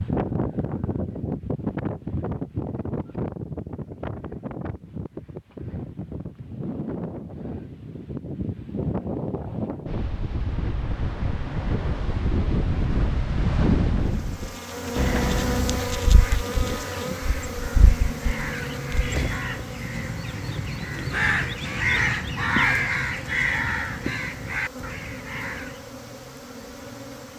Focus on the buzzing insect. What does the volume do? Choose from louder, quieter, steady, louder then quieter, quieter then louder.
quieter.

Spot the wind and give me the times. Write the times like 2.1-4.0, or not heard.
0.0-19.5.